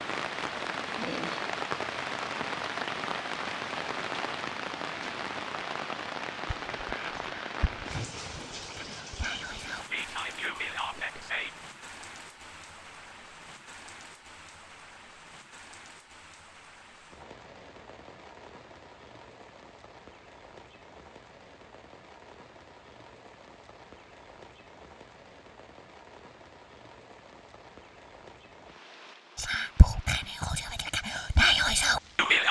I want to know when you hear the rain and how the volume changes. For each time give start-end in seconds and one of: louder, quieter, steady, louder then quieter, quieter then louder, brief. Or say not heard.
0.0-32.4 quieter.